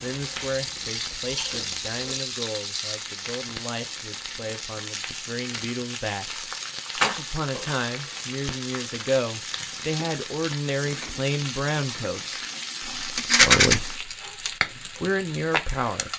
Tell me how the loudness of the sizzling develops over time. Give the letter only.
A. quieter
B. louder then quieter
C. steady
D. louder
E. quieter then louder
C.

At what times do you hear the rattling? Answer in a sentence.
The rattling can be heard from 0.4 to 3.0 s, from 7.0 to 7.8 s and from 13.2 to 13.8 s.